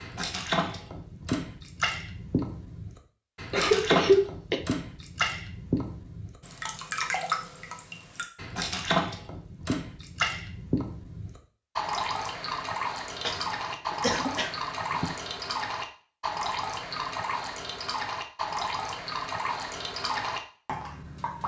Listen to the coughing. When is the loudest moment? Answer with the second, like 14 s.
4 s.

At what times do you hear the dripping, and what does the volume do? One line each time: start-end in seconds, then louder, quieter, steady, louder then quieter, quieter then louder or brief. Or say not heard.
0.0-21.4 steady.